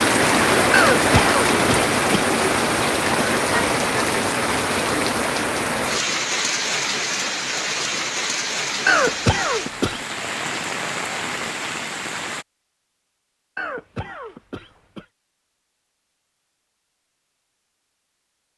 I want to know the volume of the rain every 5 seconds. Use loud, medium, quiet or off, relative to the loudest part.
loud, medium, medium, off.